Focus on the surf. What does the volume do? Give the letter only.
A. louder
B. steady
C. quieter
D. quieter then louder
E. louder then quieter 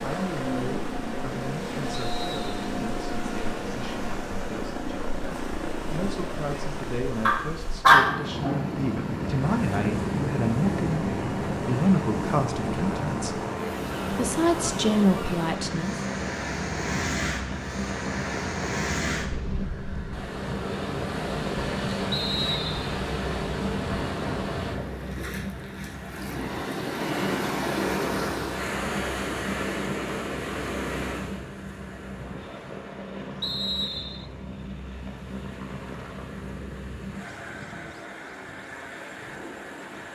E.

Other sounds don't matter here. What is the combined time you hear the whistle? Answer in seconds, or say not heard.
2 s.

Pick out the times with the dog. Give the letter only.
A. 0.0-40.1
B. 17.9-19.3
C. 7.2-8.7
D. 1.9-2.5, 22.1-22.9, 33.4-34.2
C.